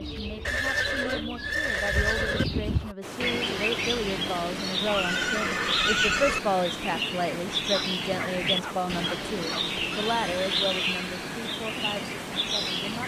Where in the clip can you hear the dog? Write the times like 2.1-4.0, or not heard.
7.7-9.7.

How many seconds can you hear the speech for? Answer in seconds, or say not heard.
13 s.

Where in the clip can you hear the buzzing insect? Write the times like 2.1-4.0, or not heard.
not heard.